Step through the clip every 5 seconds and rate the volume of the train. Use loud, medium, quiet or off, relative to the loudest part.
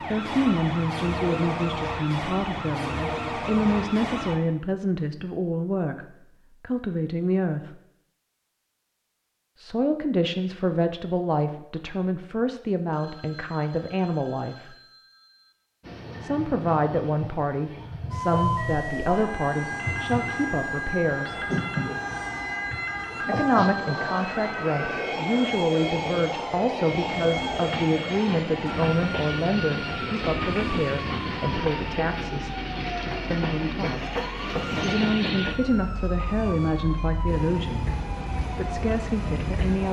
off, off, off, medium, loud, loud, loud, loud.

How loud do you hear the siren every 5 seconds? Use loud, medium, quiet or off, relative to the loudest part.
loud, off, off, loud, loud, loud, medium, medium.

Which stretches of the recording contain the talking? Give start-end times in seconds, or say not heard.
0.1-7.8, 9.6-14.8, 16.2-21.4, 23.2-32.5, 33.3-39.8.